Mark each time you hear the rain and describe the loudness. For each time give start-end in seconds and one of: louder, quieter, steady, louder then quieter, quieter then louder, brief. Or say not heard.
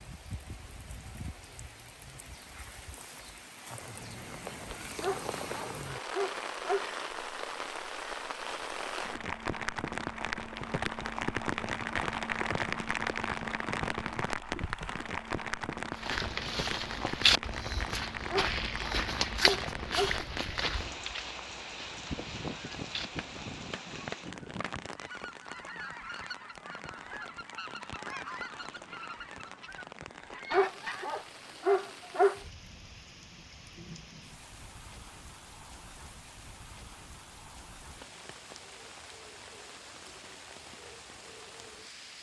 0.0-42.1 louder then quieter.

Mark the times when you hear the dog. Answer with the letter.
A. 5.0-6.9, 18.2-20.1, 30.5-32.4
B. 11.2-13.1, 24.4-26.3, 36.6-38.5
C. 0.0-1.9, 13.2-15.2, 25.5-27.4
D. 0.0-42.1
A.